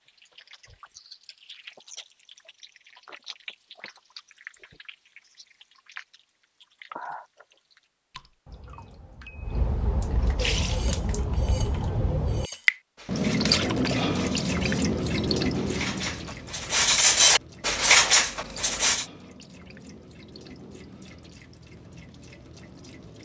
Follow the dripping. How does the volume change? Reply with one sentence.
The volume of the dripping goes up, then down.